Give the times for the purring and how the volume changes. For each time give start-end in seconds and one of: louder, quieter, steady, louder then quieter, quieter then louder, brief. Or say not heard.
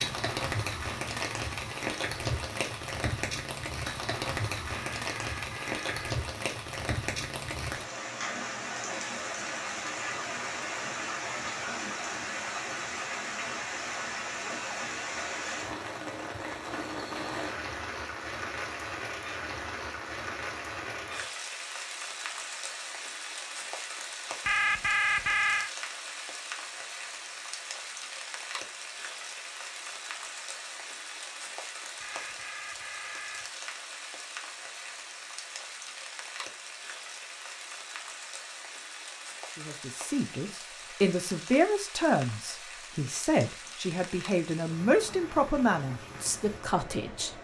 not heard.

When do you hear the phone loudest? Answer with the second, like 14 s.
25 s.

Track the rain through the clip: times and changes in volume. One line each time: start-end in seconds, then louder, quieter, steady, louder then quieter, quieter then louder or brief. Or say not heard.
0.0-47.4 quieter.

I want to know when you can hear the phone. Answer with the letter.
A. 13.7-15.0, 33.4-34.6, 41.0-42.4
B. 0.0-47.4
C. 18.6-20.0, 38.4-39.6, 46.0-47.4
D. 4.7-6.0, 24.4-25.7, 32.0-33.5
D.